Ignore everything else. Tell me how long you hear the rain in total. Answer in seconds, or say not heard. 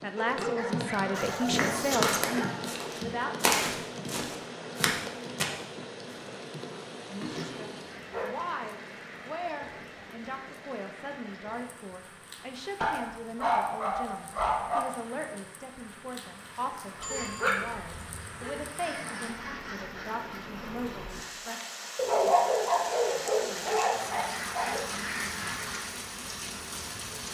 27 s.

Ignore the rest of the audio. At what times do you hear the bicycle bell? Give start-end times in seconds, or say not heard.
16.9-17.9.